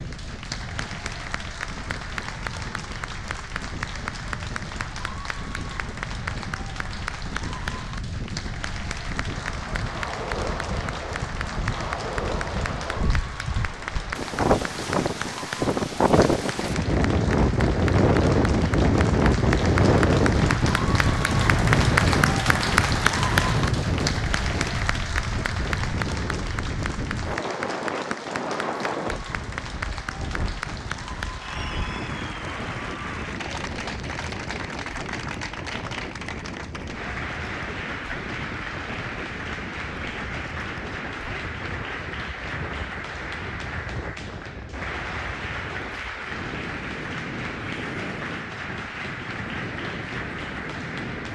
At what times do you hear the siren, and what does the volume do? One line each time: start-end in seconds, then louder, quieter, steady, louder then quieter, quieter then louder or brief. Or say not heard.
not heard.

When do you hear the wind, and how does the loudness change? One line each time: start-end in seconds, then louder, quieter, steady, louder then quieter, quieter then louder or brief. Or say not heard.
0.0-51.3 louder then quieter.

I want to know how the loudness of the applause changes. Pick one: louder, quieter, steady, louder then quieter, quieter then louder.
louder then quieter.